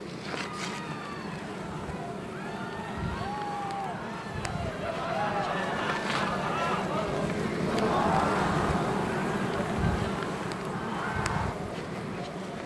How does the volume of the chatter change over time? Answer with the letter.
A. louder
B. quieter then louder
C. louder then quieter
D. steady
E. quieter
C.